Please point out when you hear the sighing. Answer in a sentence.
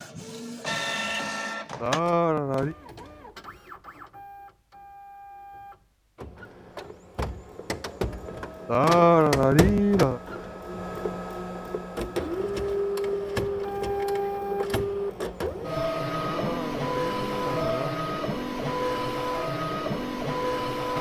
The sighing can be heard from 1.8 to 2.8 s, from 8.7 to 10.2 s and from 16.1 to 18.0 s.